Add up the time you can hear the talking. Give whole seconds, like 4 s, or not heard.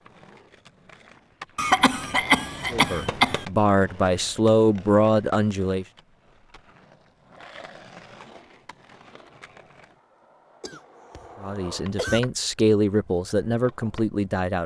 6 s.